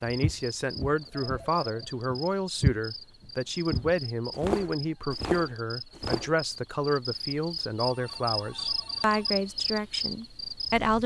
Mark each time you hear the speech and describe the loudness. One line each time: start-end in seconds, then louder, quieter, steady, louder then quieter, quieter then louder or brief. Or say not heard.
0.0-11.0 steady.